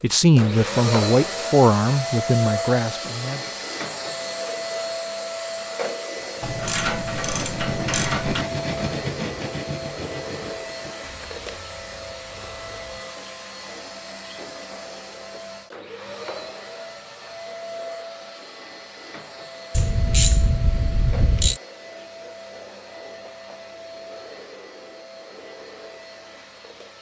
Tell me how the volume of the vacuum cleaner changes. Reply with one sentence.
The volume of the vacuum cleaner goes down.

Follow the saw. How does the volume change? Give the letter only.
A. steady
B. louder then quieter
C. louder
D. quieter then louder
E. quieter
E.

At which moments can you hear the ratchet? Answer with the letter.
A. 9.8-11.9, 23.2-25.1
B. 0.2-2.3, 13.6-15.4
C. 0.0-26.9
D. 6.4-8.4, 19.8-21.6
D.